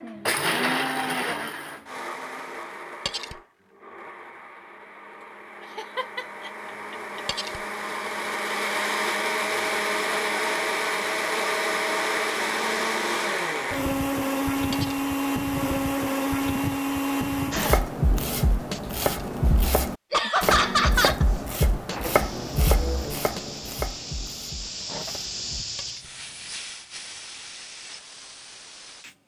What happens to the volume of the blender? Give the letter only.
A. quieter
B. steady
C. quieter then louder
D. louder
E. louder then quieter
C.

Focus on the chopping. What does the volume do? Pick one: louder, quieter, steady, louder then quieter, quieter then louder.
quieter.